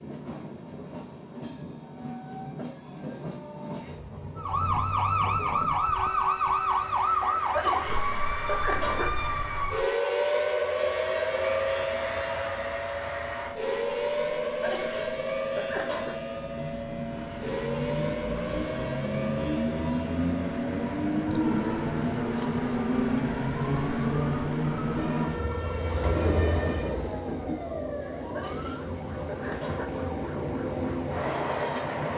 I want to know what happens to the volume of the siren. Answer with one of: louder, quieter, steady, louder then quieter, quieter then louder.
quieter.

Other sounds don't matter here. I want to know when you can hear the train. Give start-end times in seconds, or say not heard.
0.0-32.1.